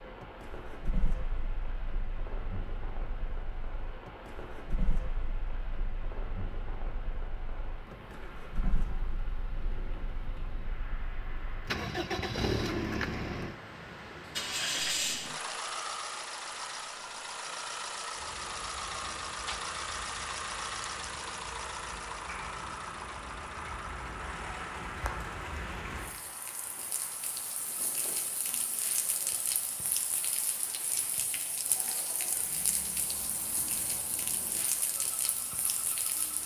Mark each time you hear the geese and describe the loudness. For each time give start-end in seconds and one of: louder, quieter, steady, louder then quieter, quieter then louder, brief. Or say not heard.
not heard.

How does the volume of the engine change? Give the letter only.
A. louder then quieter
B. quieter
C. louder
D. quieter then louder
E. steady
A.